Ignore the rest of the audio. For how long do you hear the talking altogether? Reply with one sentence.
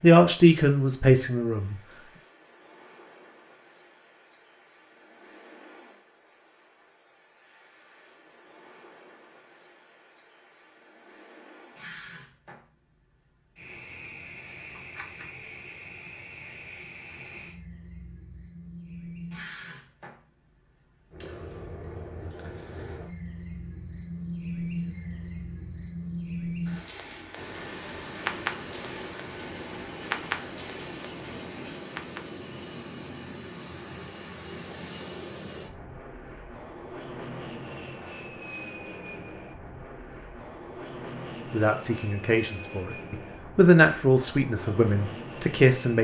You can hear the talking for 6 seconds altogether.